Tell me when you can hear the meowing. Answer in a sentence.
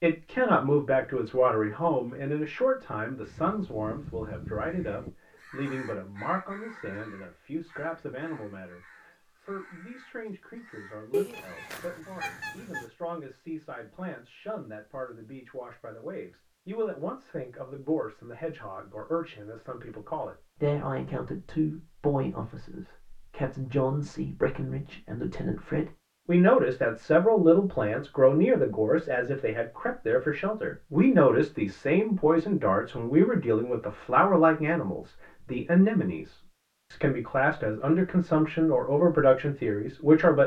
The meowing can be heard from 11.1 to 12.8 s.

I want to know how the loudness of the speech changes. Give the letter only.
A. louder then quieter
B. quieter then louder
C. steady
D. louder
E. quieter
B.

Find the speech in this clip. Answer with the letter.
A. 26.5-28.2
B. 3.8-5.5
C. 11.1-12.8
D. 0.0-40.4
D.